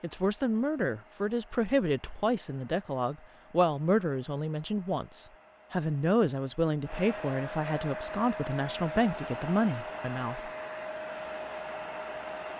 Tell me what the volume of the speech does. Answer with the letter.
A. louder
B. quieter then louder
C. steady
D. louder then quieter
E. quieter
C.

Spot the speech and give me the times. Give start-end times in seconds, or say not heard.
0.0-10.5.